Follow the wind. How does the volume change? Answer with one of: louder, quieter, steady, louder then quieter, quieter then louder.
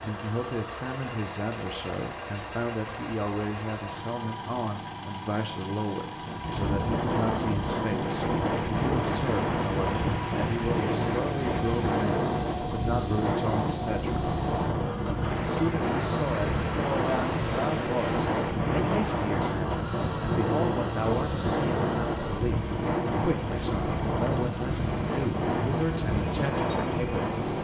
steady.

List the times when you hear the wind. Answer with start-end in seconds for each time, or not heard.
6.2-27.5.